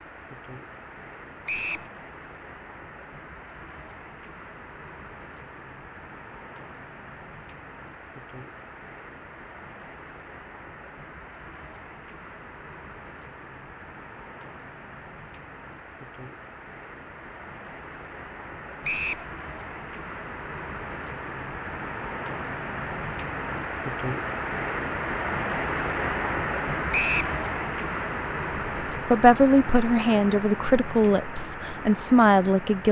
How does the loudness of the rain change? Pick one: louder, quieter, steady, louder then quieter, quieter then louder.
louder.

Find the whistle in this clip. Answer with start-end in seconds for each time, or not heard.
1.4-1.9, 18.8-19.2, 26.9-27.4.